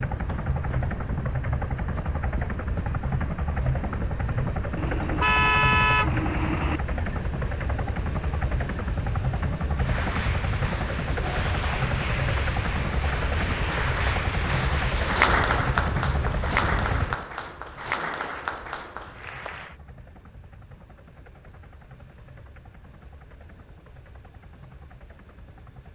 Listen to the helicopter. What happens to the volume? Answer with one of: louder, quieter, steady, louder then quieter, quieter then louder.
quieter.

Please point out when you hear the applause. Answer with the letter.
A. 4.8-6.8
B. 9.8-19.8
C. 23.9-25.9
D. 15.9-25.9
B.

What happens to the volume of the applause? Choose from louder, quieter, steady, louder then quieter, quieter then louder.
louder then quieter.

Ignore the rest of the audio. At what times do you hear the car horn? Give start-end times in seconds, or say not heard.
4.8-6.8.